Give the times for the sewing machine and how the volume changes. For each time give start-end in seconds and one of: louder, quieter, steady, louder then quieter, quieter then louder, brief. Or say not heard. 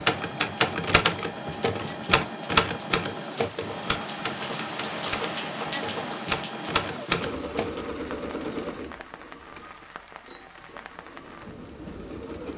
0.0-12.5 quieter.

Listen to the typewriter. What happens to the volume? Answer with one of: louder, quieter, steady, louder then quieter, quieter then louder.
quieter then louder.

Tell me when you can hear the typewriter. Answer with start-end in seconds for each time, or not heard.
0.0-7.7.